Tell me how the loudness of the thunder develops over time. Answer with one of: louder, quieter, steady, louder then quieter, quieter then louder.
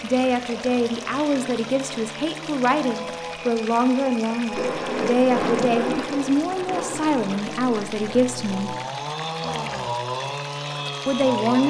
quieter.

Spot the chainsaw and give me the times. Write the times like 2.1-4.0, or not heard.
0.0-11.6.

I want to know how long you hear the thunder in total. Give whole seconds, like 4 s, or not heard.
4 s.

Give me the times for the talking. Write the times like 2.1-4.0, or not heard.
0.0-8.8, 11.1-11.6.